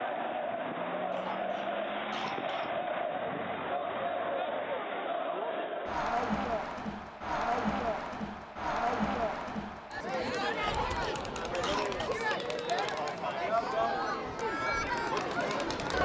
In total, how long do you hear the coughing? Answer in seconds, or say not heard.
3 s.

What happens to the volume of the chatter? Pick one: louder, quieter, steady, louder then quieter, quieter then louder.
steady.